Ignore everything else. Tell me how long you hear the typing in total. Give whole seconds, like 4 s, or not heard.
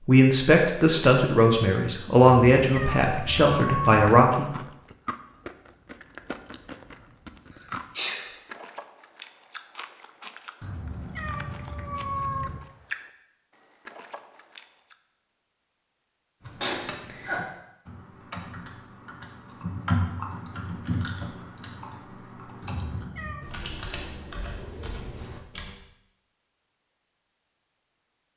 9 s.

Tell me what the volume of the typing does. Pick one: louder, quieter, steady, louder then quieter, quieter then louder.
louder then quieter.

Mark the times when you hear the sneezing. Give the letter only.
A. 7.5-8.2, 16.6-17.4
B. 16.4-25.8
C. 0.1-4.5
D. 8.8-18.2
A.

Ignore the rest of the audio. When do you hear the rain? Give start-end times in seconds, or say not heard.
not heard.